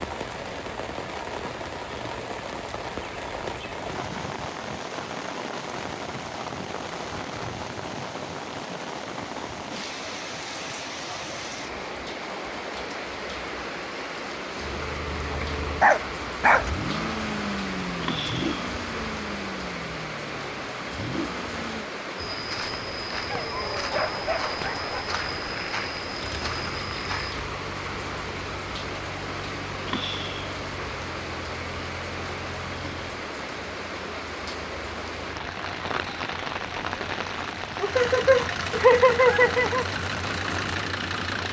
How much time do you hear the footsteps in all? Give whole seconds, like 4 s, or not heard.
5 s.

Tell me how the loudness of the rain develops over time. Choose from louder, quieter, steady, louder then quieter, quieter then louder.
steady.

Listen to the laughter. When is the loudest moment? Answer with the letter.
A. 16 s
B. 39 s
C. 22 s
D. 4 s
B.